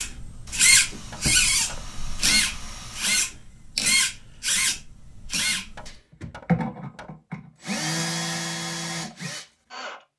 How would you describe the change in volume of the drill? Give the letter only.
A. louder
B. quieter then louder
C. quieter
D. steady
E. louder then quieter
C.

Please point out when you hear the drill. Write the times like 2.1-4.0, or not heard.
0.0-10.0.